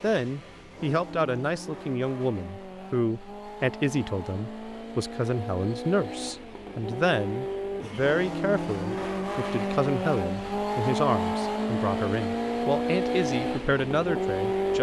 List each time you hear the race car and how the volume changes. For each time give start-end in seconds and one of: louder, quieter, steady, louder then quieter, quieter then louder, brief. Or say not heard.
0.0-14.7 louder.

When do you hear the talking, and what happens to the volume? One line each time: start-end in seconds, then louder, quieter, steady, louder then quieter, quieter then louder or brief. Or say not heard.
0.0-14.7 steady.